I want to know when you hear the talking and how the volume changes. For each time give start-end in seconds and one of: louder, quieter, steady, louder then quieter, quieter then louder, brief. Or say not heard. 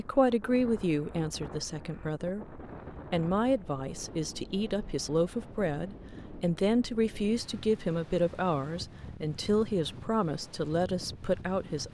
0.0-11.8 steady.